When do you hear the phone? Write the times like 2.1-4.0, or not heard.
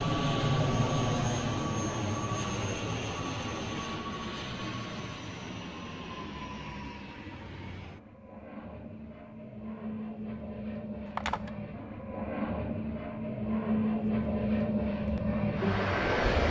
11.1-11.5.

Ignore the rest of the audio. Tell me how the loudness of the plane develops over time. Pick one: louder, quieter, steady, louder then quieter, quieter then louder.
quieter then louder.